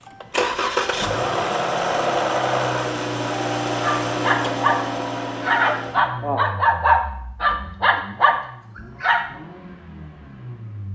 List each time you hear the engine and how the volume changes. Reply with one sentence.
You can hear the engine from 0.1 to 10.8 s, getting quieter.